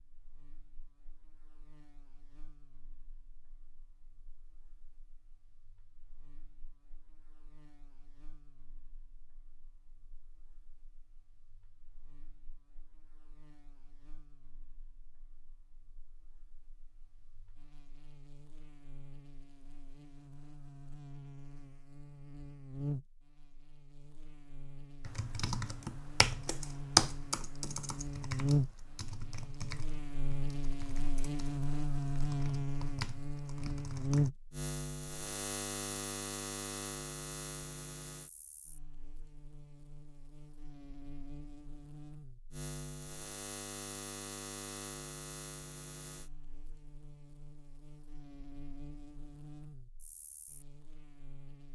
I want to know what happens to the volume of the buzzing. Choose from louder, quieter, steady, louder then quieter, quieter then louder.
louder then quieter.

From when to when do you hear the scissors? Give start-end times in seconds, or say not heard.
not heard.